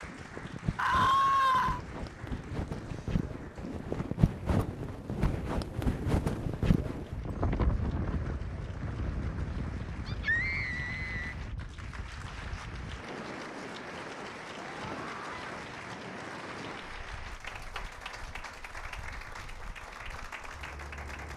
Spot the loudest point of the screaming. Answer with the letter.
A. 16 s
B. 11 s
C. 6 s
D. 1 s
D.